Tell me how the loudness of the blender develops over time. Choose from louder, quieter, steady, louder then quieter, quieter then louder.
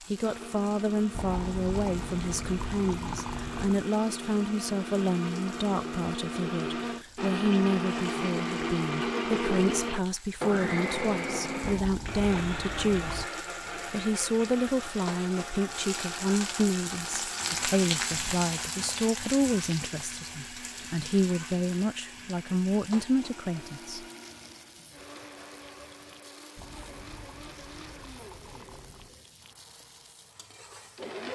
louder then quieter.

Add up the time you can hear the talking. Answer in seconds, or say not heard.
24 s.